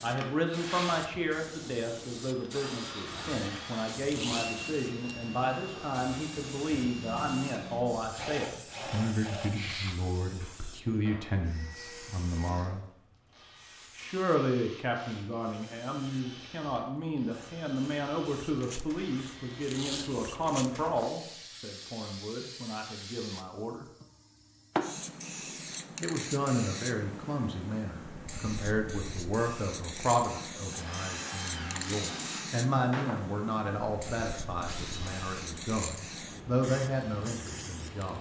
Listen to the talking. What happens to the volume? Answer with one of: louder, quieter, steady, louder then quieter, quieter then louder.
steady.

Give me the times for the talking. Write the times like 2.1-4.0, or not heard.
0.0-12.8, 13.9-23.9, 26.0-38.1.